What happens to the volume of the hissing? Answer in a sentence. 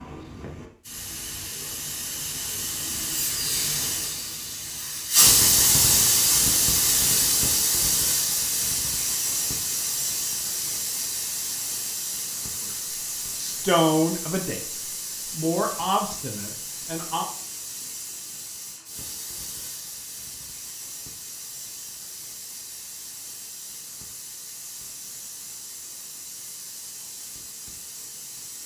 The loudness of the hissing goes down.